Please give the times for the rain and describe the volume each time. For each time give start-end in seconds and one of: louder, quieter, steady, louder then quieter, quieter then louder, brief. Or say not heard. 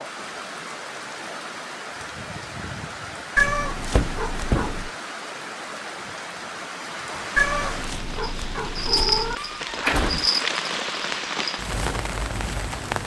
0.0-13.0 louder.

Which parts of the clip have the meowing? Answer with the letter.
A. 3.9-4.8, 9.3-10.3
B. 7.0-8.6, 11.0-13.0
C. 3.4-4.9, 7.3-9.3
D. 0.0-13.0
C.